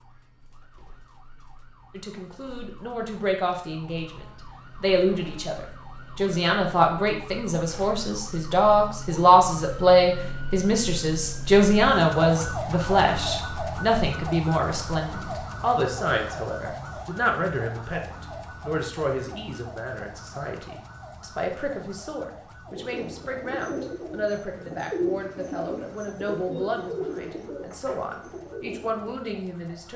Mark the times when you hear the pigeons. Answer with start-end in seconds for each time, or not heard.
22.7-29.3.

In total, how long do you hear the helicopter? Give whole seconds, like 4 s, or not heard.
not heard.